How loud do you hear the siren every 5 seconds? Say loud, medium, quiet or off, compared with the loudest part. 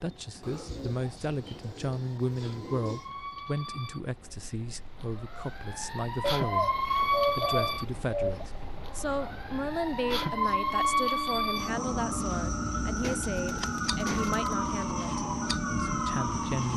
quiet, loud, loud, loud.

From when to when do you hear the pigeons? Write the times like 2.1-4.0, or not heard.
0.4-3.1, 6.2-8.4, 13.0-14.6.